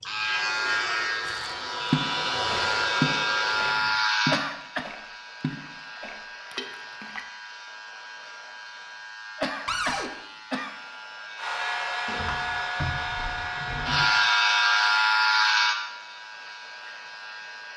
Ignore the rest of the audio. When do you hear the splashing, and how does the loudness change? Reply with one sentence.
You can hear the splashing from 1.2 to 7.2 s, getting quieter.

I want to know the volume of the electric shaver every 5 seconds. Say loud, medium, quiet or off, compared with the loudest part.
loud, quiet, loud, loud.